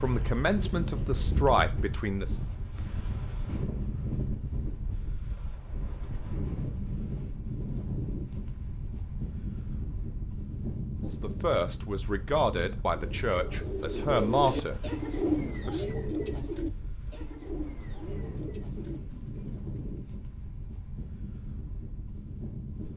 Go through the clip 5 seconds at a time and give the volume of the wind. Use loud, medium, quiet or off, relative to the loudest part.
loud, loud, loud, loud, medium.